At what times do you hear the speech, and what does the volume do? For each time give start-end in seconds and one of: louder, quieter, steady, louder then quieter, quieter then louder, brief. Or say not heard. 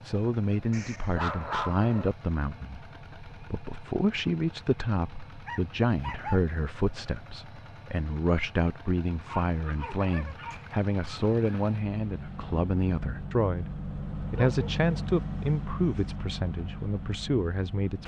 0.0-18.0 steady.